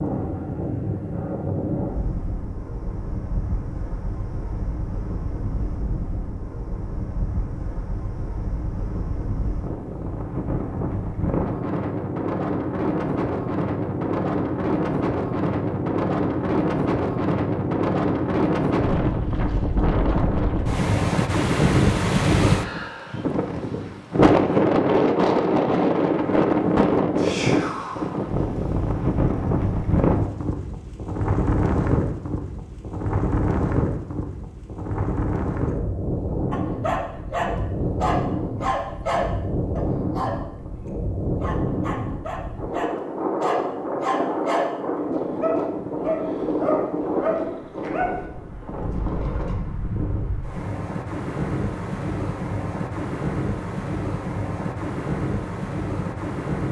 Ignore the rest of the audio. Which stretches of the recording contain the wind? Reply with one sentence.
The wind can be heard from 0.0 to 56.6 s.